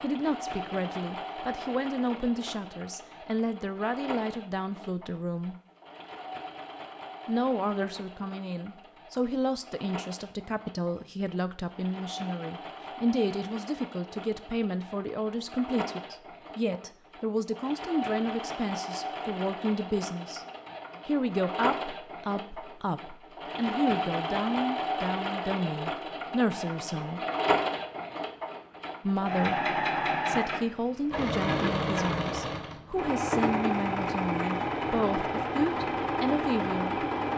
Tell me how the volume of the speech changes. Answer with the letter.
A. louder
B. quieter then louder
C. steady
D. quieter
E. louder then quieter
C.